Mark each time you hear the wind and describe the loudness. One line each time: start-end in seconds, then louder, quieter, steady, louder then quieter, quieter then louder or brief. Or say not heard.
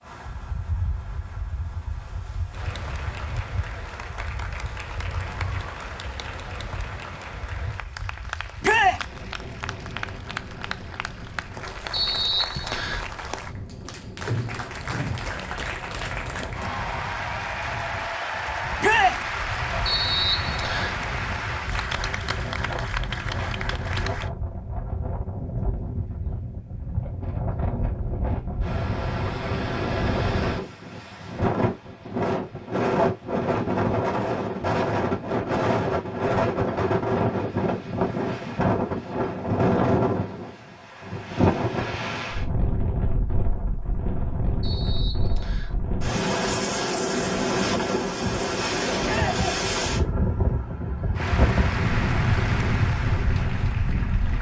0.0-54.3 louder.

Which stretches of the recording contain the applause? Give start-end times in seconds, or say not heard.
2.5-24.3, 51.1-54.3.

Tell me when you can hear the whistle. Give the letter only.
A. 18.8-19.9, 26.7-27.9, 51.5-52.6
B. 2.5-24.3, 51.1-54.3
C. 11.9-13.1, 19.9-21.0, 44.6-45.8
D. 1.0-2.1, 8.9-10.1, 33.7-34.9
C.